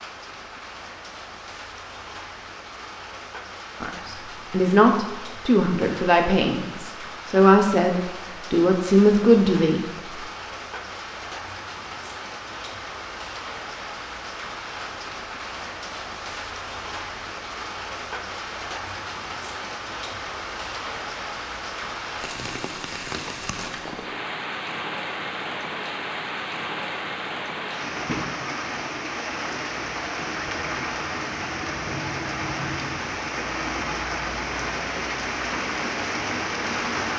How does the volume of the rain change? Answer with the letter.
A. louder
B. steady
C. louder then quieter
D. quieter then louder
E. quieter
A.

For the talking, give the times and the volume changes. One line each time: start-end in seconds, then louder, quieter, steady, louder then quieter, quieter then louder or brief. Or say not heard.
3.8-9.8 quieter then louder.